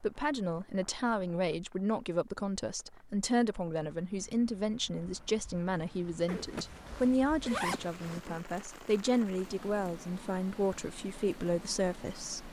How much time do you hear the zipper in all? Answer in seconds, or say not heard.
2 s.